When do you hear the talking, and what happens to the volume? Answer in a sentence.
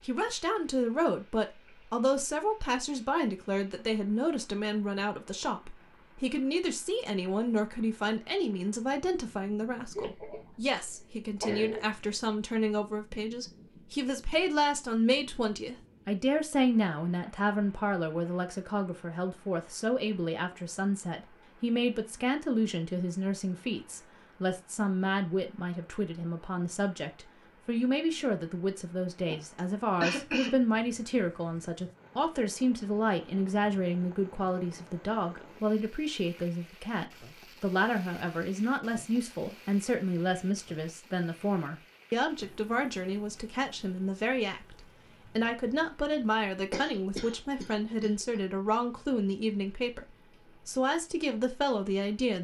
You can hear the talking from 0.0 to 50.0 s, at a steady volume; and briefly from 50.6 to 52.3 s.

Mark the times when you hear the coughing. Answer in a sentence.
You can hear the coughing from 9.9 to 11.8 s, from 29.2 to 30.6 s and from 46.7 to 48.4 s.